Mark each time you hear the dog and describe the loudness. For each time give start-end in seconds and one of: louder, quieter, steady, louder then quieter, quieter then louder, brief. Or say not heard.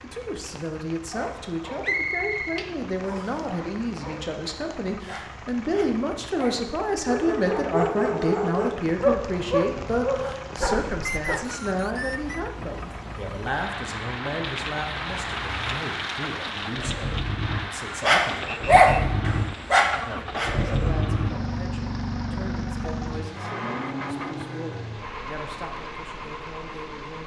1.1-11.4 louder
18.0-20.8 brief.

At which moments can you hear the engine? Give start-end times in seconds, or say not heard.
0.0-27.2.